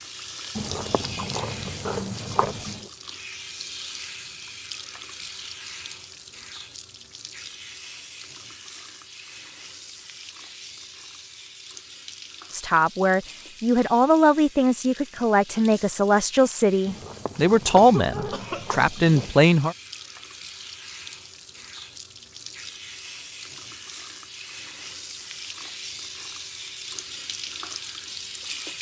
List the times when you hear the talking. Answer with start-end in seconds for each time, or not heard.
12.5-19.8.